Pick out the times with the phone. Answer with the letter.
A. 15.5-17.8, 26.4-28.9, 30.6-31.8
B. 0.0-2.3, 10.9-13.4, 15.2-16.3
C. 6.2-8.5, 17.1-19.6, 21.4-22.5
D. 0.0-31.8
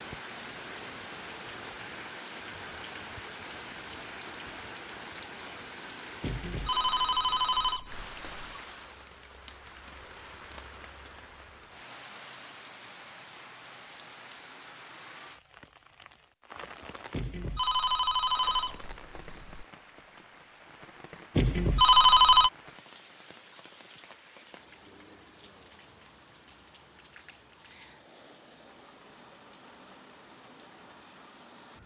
C.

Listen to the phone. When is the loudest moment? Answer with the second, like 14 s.
22 s.